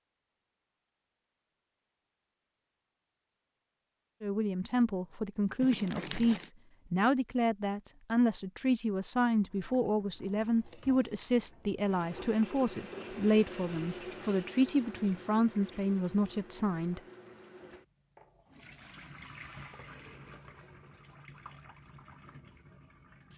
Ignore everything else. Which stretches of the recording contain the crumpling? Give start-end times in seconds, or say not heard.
5.6-6.5.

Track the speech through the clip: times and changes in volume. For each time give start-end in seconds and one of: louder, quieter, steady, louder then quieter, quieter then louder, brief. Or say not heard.
4.2-17.0 steady.